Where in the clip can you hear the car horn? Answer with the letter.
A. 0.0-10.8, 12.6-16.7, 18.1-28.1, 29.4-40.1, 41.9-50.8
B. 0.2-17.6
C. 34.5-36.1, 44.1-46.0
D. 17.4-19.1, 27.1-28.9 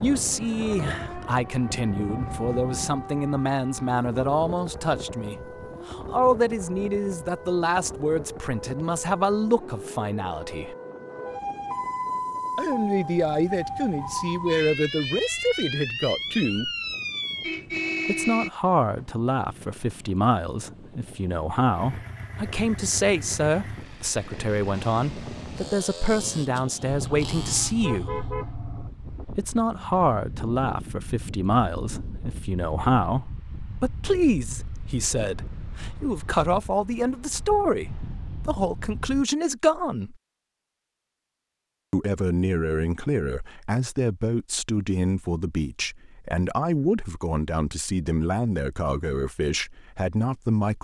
D.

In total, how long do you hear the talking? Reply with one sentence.
The talking can be heard for 45 seconds in total.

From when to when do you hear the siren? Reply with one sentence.
You can hear the siren from 0.2 to 17.6 s.